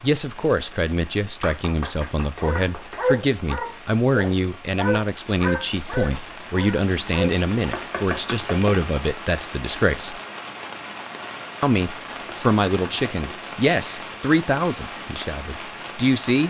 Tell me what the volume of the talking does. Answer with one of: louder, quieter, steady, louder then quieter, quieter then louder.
steady.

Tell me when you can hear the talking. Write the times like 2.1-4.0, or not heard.
0.0-10.2, 11.6-16.4.